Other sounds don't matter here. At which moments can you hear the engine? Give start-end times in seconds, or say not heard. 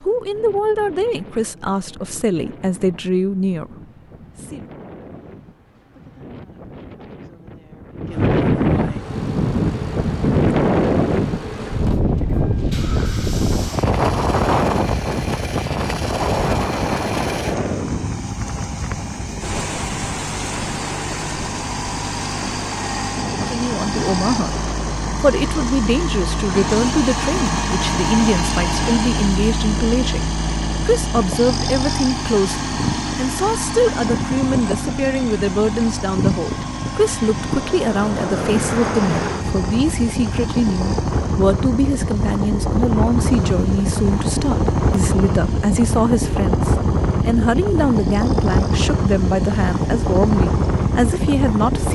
8.9-51.8.